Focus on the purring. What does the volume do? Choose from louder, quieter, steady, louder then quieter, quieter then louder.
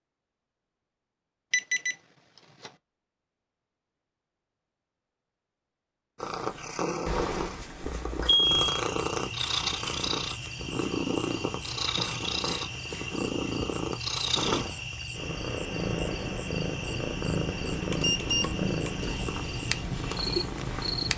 steady.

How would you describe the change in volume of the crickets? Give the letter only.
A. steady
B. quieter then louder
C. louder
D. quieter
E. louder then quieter
A.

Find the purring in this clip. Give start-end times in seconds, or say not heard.
6.2-21.1.